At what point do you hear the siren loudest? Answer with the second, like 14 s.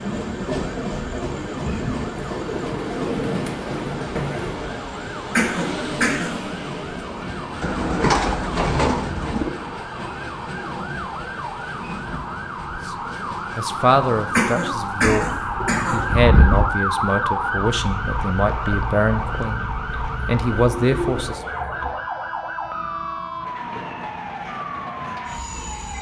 17 s.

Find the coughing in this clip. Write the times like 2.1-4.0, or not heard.
5.3-6.4, 14.3-16.1.